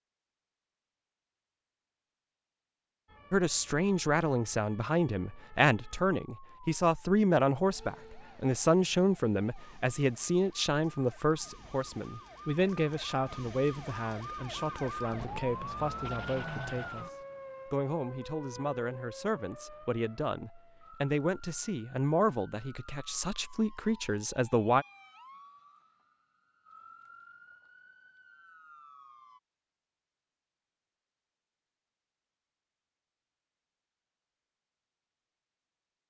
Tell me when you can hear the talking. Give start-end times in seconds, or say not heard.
3.3-24.9.